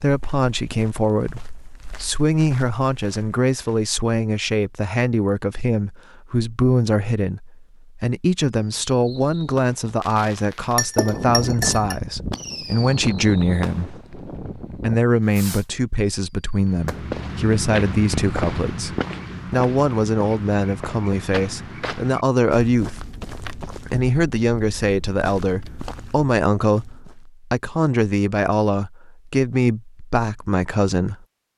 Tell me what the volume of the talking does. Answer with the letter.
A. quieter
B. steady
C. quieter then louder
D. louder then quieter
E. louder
B.